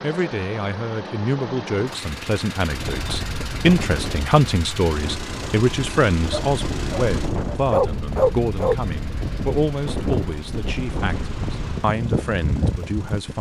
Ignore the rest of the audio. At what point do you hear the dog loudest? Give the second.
8 s.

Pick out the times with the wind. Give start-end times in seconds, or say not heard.
2.6-13.3.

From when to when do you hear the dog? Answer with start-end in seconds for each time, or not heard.
6.3-8.8.